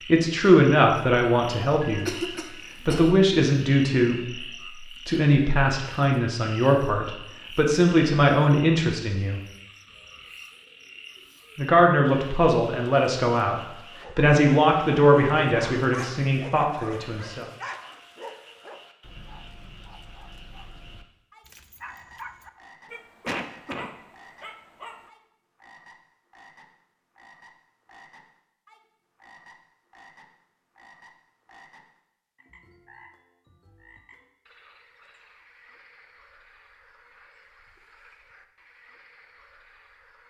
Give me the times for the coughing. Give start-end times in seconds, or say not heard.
1.8-3.2, 23.2-23.9.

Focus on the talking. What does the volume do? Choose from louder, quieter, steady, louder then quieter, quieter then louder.
steady.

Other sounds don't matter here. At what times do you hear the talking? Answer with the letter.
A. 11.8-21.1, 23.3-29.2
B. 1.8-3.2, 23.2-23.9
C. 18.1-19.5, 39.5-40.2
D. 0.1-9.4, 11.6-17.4
D.